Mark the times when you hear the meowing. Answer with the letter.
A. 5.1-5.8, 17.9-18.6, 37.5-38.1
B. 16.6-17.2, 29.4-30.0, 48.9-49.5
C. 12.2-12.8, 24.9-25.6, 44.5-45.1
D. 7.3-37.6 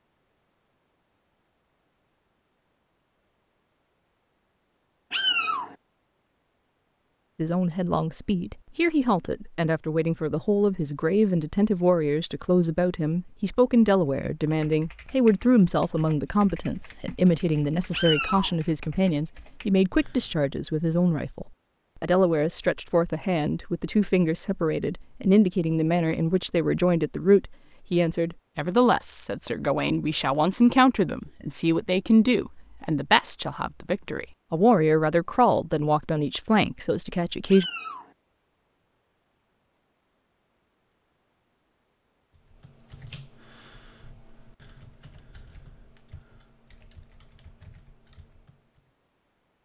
A.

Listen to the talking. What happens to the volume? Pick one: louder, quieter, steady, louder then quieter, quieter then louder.
steady.